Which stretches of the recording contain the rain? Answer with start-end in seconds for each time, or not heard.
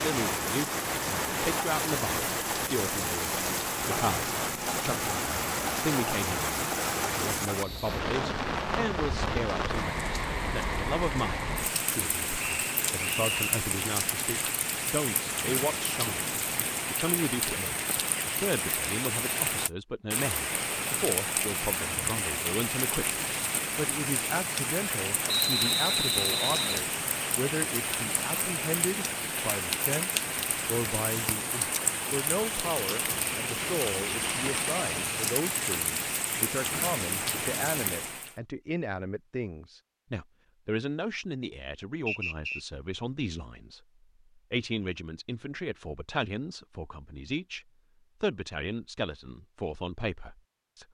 0.0-38.4.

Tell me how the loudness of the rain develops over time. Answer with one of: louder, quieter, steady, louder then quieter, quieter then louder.
steady.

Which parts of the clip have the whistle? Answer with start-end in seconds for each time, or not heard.
12.3-13.6, 25.2-26.9, 42.0-42.6.